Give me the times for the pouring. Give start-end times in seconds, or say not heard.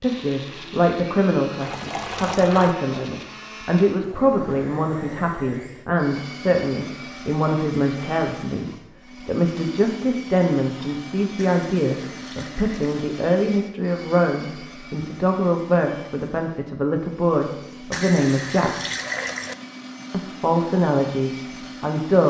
1.6-2.8, 11.3-13.1, 17.9-19.6.